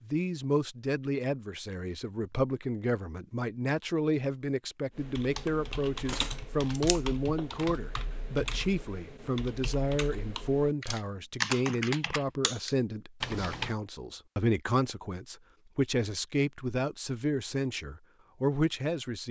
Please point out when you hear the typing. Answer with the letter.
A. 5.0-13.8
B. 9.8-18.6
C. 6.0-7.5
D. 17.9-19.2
A.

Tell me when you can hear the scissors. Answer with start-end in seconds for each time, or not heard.
6.0-7.5.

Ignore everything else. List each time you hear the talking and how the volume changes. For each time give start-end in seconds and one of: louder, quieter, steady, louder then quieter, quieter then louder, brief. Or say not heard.
0.0-19.2 steady.